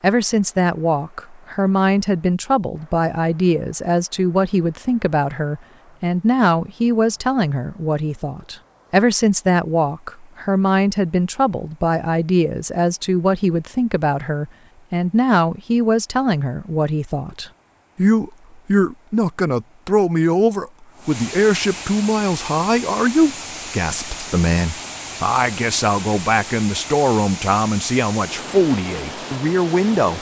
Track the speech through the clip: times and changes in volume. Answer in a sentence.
You can hear the speech from 0.0 to 30.1 s, at a steady volume.